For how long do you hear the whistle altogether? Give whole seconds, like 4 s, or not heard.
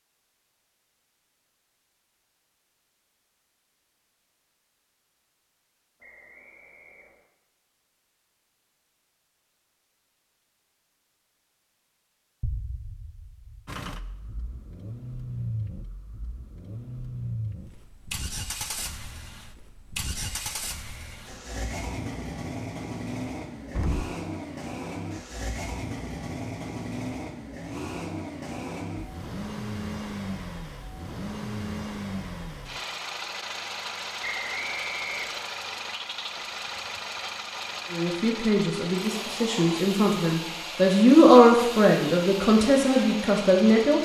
4 s.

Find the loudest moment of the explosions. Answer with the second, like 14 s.
24 s.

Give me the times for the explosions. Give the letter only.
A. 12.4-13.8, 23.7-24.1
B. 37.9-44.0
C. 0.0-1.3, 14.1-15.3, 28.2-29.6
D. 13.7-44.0
A.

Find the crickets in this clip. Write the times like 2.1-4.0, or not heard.
not heard.